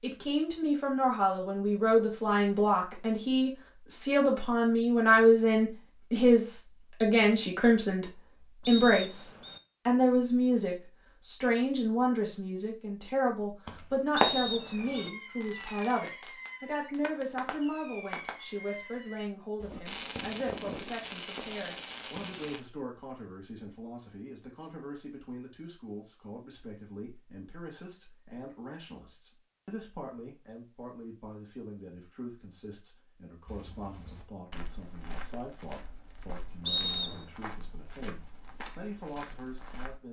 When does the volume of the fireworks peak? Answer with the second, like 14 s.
14 s.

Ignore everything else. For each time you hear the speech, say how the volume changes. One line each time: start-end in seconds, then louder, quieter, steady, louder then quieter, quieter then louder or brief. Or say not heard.
0.0-40.0 quieter.